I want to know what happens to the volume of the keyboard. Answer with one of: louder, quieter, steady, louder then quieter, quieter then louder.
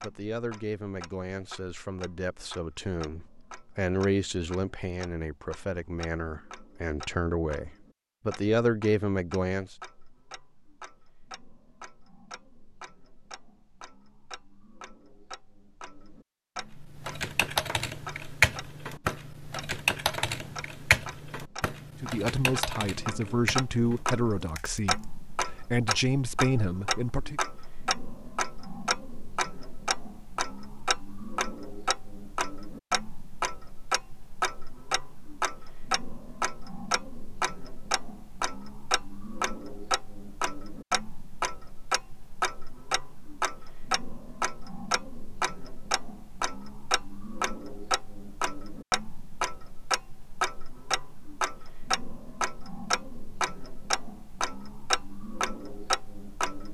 quieter.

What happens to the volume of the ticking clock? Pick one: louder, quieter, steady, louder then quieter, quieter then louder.
louder.